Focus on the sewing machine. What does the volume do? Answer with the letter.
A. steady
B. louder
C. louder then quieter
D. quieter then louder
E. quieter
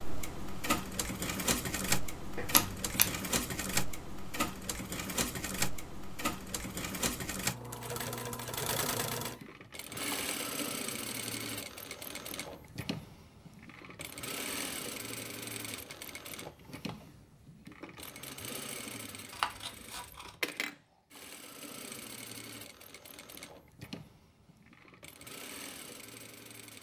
E.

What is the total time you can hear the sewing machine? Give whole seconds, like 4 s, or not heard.
27 s.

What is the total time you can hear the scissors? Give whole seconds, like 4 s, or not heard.
2 s.